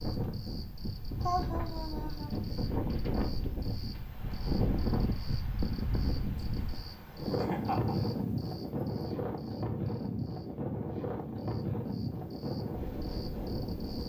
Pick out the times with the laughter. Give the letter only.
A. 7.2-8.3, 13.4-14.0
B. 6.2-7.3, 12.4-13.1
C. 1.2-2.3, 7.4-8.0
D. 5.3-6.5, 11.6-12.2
C.